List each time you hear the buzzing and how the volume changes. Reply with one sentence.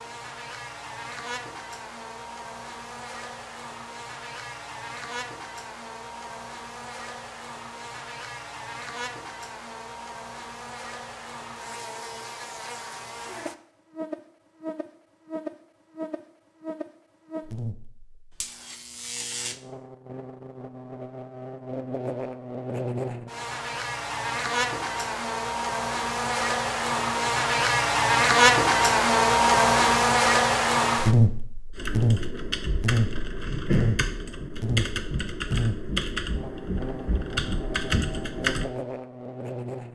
You can hear the buzzing from 0.0 to 39.9 s, getting louder then quieter.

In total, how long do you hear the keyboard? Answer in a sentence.
The keyboard can be heard for 7 seconds in total.